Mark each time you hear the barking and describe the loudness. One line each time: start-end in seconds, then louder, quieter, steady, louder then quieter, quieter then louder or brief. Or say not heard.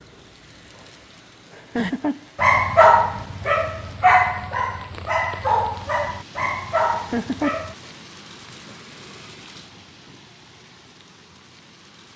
1.8-7.8 quieter.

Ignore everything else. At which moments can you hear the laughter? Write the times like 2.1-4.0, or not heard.
1.5-2.2, 6.9-7.7.